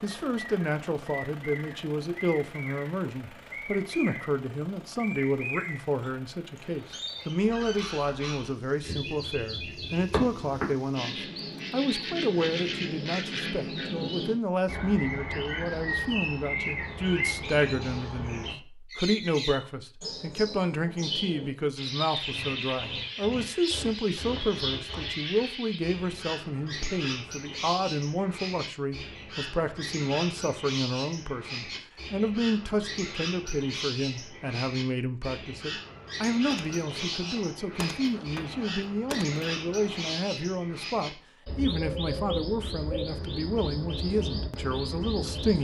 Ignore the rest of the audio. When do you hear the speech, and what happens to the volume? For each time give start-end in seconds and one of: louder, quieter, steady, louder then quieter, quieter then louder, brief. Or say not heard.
0.0-45.6 steady.